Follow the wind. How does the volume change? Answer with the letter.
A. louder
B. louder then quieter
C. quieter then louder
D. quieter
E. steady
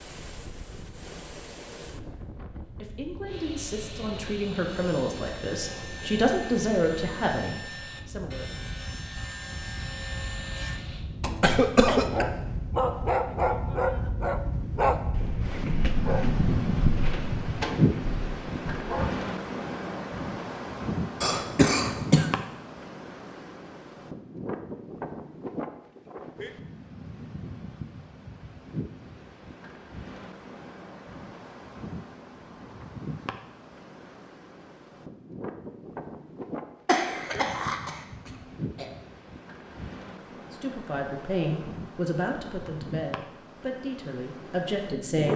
B.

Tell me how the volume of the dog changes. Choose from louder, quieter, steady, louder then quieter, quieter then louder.
quieter.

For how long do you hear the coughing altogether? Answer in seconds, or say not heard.
4 s.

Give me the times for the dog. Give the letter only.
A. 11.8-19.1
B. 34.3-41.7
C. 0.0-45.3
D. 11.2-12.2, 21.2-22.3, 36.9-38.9
A.